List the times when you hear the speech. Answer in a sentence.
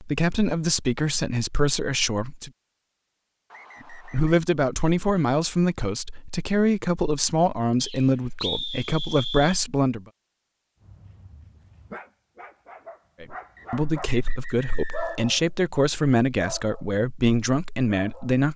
The speech can be heard from 0.0 to 2.5 s, from 3.9 to 10.1 s and from 13.2 to 18.5 s.